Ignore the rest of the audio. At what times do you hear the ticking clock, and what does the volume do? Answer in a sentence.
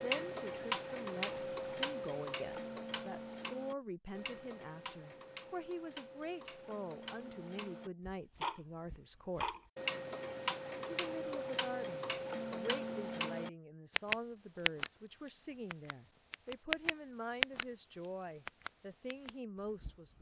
The ticking clock can be heard from 0.0 to 19.9 s, getting quieter then louder.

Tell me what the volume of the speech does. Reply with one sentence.
The loudness of the speech stays about the same.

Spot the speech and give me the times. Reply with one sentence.
The speech can be heard from 0.0 to 9.6 s and from 10.8 to 20.1 s.